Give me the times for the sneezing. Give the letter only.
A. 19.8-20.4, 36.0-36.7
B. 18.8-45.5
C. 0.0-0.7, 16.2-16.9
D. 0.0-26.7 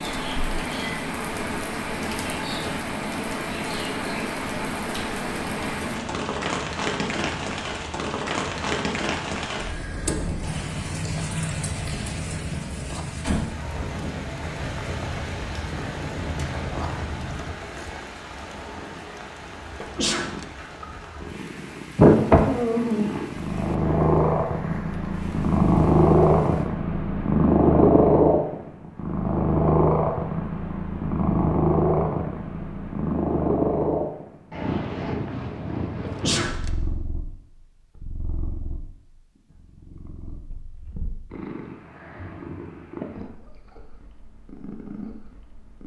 A.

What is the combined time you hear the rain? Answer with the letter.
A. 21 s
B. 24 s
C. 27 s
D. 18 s
C.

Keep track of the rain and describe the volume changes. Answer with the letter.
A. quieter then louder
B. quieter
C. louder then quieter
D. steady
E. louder
B.